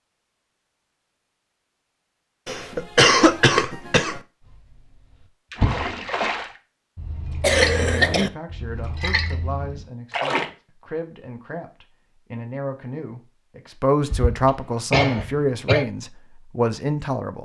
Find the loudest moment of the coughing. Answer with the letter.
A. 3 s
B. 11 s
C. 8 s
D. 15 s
A.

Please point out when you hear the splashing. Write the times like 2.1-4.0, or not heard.
4.5-10.5.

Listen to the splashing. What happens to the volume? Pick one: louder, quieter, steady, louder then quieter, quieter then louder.
quieter then louder.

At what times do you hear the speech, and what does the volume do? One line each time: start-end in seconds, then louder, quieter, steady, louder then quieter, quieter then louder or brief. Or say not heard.
7.8-17.4 louder.